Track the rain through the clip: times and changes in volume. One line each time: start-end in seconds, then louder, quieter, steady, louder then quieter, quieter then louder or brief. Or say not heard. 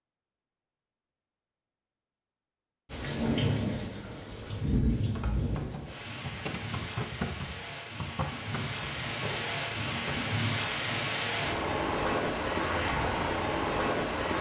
2.9-14.3 quieter then louder.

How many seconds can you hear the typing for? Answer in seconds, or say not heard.
5 s.